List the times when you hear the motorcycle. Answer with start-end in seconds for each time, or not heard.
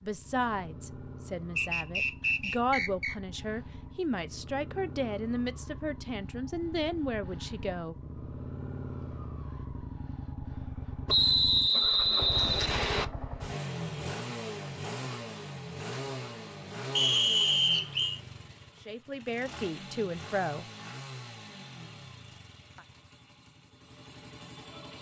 0.0-24.9.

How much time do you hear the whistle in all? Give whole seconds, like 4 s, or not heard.
5 s.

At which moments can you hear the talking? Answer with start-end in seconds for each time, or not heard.
0.0-8.0, 18.9-20.6.